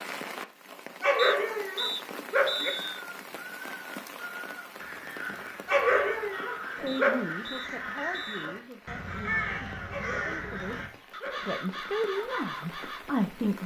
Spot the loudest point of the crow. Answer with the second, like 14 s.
9 s.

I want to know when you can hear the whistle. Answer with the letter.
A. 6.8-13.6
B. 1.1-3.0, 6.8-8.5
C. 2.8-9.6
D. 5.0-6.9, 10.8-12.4
B.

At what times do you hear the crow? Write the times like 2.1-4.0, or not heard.
2.6-13.0.